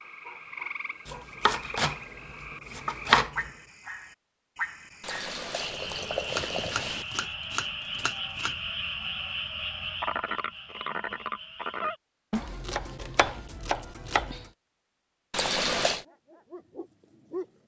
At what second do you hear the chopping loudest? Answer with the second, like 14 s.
3 s.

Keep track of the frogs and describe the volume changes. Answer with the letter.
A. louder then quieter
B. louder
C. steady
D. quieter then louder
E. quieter
B.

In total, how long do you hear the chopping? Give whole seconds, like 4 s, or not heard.
7 s.